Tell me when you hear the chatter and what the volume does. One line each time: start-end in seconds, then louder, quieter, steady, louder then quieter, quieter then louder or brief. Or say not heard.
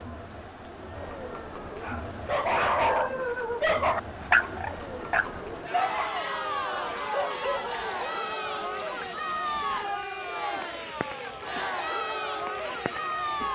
0.0-13.5 louder.